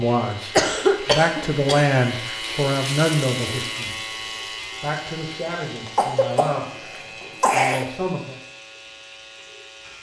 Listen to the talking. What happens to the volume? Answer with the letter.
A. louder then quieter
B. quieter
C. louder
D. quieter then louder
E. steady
B.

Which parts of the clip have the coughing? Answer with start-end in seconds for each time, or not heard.
0.2-1.9, 5.8-7.8.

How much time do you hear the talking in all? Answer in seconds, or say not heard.
8 s.